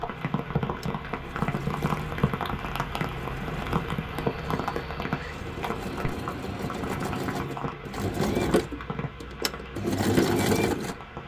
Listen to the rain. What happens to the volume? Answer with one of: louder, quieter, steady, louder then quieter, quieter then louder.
quieter.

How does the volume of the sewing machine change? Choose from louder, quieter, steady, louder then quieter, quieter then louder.
louder.